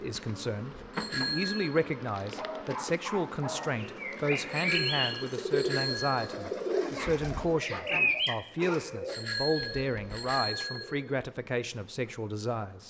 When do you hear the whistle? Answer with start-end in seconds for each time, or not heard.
not heard.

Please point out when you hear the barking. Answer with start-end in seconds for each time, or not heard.
2.4-4.1, 7.0-8.8.